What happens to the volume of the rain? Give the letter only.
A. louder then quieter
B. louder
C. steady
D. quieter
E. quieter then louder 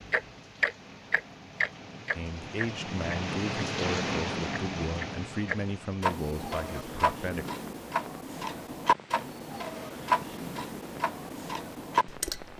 A.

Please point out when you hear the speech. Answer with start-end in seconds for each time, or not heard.
2.1-7.5.